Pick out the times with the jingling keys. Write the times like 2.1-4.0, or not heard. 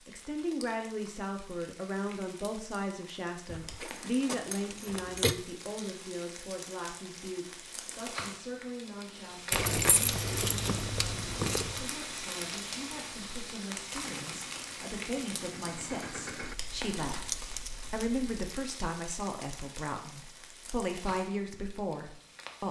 3.5-5.3, 9.5-11.8, 16.4-18.6.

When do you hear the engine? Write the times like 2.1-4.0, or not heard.
14.0-16.6.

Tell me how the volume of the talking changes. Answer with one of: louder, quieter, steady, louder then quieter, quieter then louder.
quieter then louder.